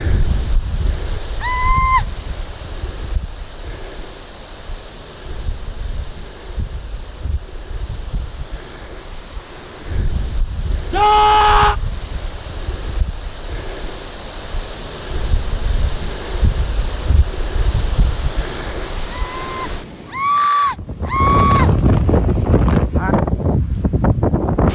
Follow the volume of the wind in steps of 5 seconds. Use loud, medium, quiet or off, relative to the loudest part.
quiet, quiet, quiet, medium, loud.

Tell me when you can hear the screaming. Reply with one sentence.
The screaming can be heard from 1.4 to 2.0 s, from 10.9 to 11.8 s and from 19.1 to 21.7 s.